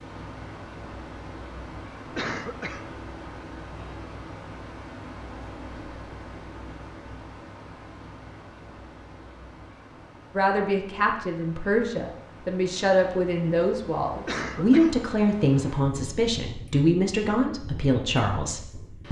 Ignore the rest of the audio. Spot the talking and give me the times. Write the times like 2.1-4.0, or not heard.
10.3-19.0.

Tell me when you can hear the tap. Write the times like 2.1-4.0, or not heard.
not heard.